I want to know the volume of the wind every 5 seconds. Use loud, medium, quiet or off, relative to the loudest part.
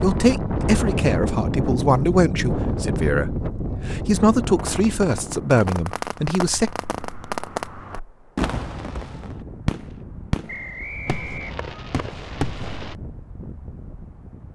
loud, quiet, quiet.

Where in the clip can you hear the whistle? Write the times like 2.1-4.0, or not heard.
10.4-11.4.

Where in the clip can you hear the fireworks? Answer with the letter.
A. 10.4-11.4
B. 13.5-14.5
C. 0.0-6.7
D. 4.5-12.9
D.